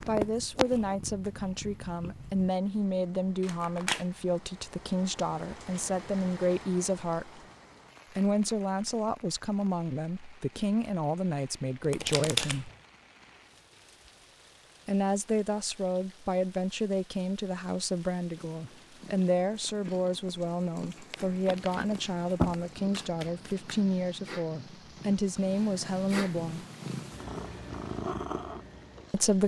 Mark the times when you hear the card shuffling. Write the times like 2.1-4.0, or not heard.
3.4-4.0, 11.8-12.8, 21.1-23.9.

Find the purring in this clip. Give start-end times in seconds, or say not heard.
0.0-2.5, 18.4-29.4.